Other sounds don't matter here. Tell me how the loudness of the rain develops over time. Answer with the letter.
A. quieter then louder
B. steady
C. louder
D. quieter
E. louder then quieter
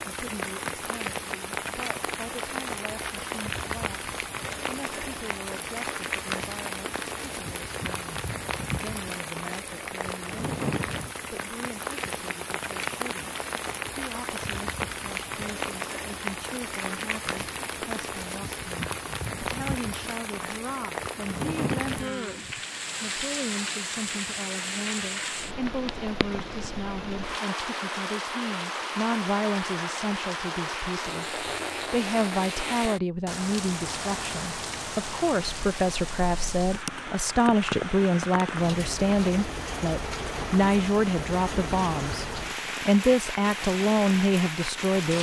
B.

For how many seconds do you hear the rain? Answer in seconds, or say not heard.
45 s.